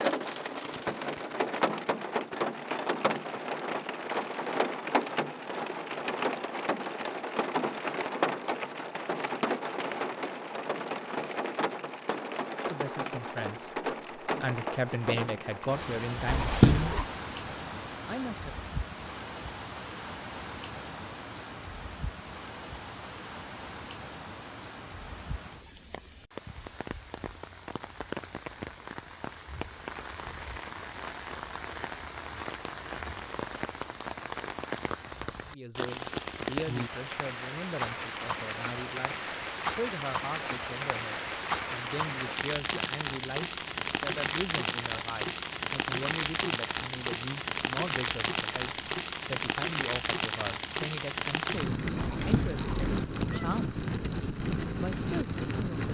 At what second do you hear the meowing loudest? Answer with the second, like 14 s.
17 s.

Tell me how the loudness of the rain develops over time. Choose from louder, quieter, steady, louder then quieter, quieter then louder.
quieter then louder.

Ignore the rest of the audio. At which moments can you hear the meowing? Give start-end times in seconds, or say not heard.
16.2-17.1, 52.0-53.5.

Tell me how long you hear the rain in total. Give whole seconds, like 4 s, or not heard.
56 s.